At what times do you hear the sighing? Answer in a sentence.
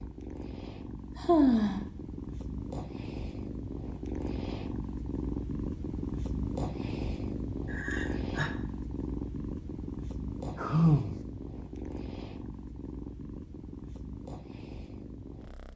You can hear the sighing from 1.1 to 1.9 s, from 7.7 to 8.5 s and from 10.6 to 11.2 s.